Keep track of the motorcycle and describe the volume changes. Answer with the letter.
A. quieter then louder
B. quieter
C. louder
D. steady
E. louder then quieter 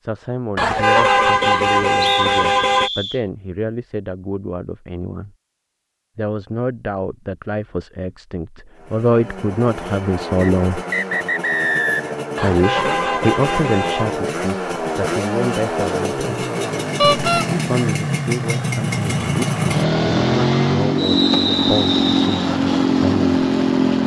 C.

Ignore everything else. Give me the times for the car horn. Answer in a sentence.
The car horn can be heard from 0.6 to 2.9 s, from 12.3 to 14.2 s and from 17.0 to 17.4 s.